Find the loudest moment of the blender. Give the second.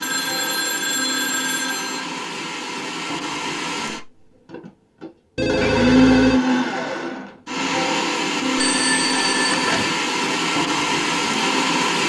6 s.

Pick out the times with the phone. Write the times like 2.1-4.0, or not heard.
0.0-2.0, 5.3-6.4, 8.6-10.0.